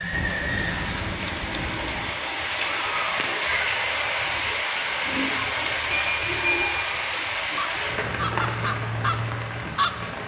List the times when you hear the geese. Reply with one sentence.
You can hear the geese from 7.5 to 9.9 s.